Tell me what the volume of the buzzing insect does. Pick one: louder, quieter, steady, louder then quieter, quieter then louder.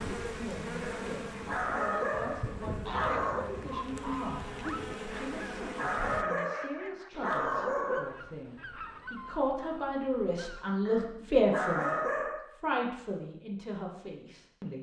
quieter then louder.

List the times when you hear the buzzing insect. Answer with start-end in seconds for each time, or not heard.
0.0-6.2.